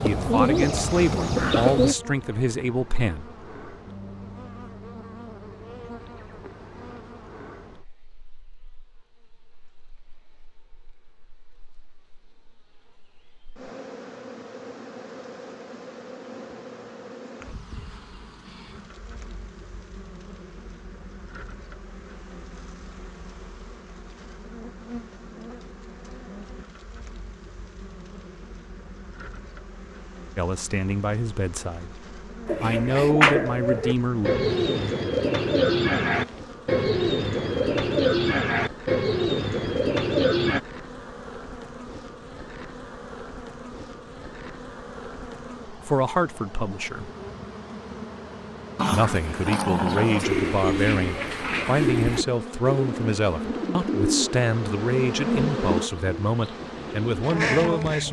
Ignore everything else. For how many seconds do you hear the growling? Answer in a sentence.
You can hear the growling for 2 seconds altogether.